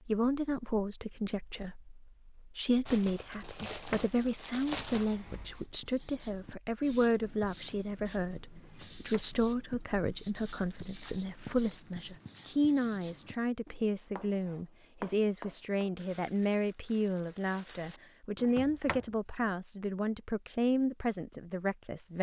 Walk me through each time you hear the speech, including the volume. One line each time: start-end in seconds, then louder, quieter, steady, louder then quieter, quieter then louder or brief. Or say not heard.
0.1-22.1 steady.